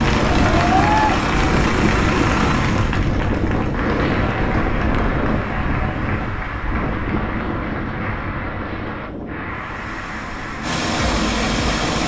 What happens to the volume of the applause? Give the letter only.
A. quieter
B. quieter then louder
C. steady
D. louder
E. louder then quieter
A.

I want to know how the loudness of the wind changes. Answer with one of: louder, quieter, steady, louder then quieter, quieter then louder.
quieter.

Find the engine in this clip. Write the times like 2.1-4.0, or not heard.
0.0-2.9, 9.5-12.0.